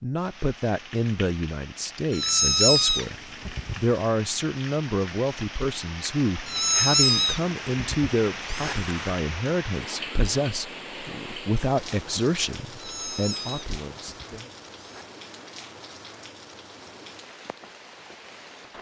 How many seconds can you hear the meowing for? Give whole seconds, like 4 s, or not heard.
6 s.